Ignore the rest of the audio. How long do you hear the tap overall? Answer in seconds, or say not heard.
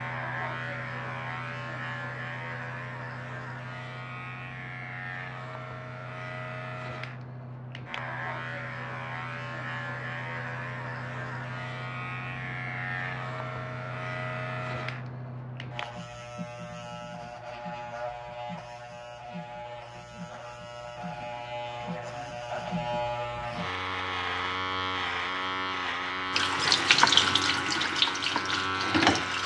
3 s.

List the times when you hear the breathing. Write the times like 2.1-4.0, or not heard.
not heard.